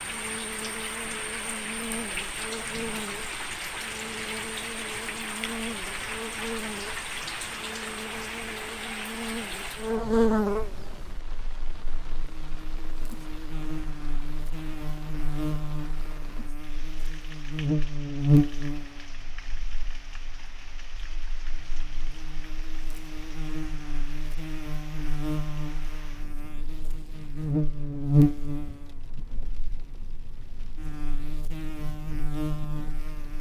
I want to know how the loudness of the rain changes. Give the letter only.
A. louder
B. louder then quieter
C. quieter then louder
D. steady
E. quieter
E.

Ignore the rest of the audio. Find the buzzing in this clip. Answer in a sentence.
The buzzing can be heard from 0.0 to 33.3 s.